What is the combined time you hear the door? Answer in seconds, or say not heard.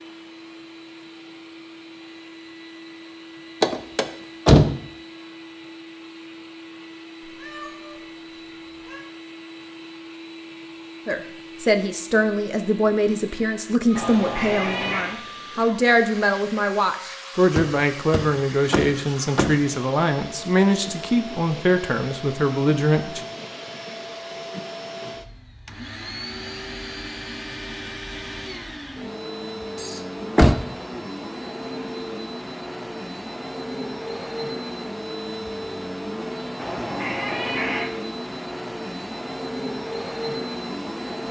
4 s.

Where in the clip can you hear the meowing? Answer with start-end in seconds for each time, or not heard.
7.2-9.1, 13.9-15.2, 36.5-37.9.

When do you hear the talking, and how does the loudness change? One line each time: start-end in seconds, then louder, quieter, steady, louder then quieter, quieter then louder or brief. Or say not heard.
11.1-23.2 steady.